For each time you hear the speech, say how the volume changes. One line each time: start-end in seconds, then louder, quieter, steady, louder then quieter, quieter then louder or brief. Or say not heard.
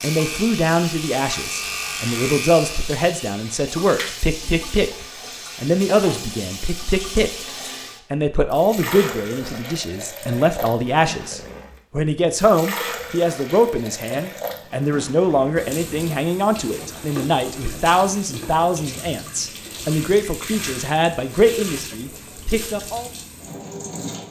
0.0-7.5 steady
8.1-23.1 steady.